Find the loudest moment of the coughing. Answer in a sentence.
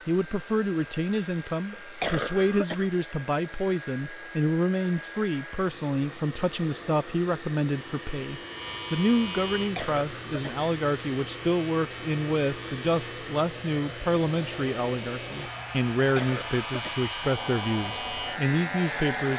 The volume of the coughing peaks at 2 seconds.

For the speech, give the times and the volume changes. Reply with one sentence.
The speech can be heard from 0.1 to 19.3 s, at a steady volume.